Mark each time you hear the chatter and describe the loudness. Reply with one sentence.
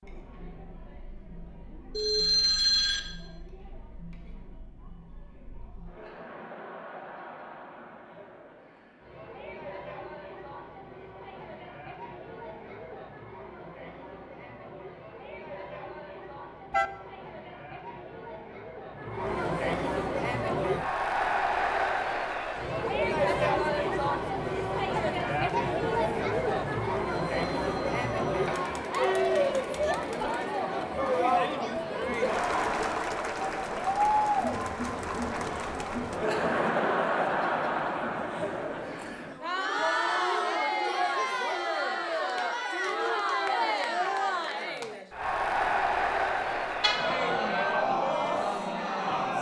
The chatter can be heard from 0.0 to 49.3 s, getting louder.